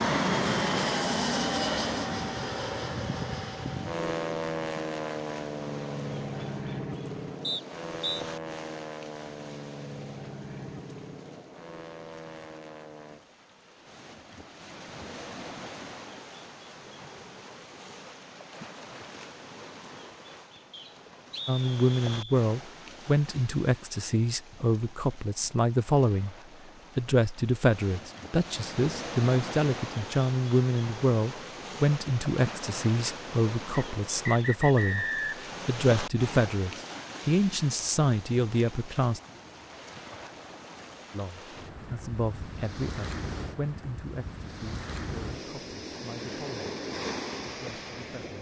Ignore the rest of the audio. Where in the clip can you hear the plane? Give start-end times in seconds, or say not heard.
0.0-13.2.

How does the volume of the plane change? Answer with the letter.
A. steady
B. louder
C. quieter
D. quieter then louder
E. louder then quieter
C.